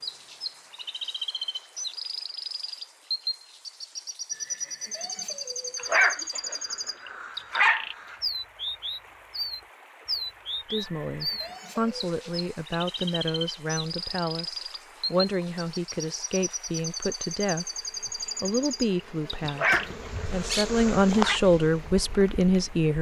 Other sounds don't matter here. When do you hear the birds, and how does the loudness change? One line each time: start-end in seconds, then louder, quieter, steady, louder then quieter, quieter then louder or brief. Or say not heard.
0.0-22.9 steady.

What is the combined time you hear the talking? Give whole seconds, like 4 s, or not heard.
12 s.